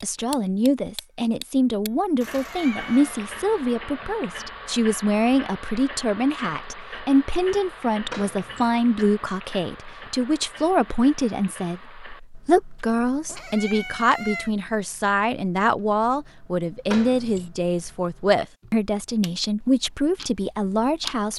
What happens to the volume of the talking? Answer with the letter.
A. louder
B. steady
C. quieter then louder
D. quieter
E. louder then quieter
B.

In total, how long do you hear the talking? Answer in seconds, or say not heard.
21 s.